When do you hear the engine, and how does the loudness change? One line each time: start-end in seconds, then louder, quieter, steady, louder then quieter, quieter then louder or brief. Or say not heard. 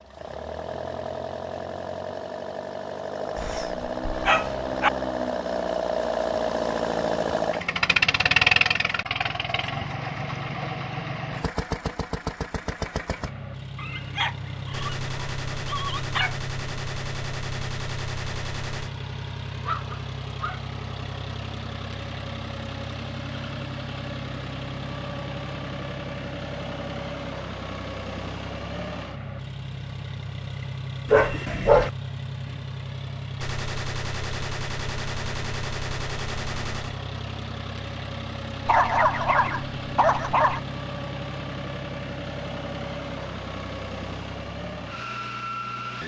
0.0-46.0 quieter.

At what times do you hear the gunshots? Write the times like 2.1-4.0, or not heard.
14.7-18.9, 33.4-37.0.